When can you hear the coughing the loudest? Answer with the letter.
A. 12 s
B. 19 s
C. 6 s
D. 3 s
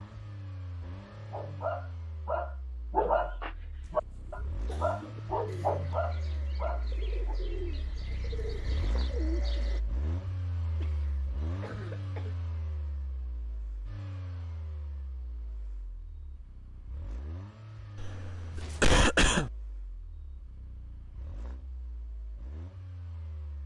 B.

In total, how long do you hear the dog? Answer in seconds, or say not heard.
6 s.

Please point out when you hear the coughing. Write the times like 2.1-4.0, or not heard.
4.7-5.2, 10.8-12.3, 17.9-19.5.